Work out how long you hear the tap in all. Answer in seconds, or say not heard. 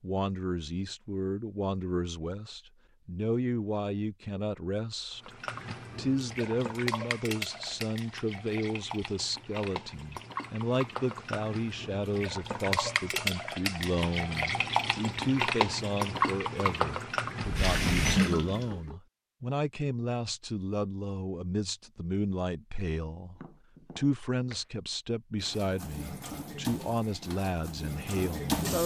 17 s.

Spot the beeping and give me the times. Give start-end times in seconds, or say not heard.
17.4-18.2.